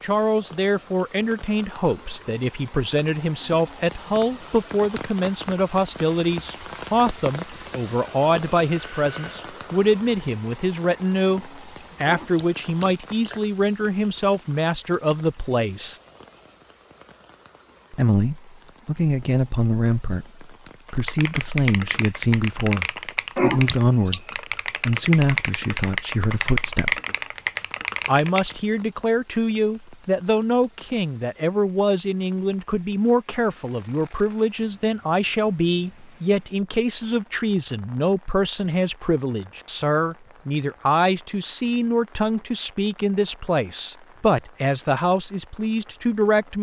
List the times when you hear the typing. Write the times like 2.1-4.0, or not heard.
20.9-28.6.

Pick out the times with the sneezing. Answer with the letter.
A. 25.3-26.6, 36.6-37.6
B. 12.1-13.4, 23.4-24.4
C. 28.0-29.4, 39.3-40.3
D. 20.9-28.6
B.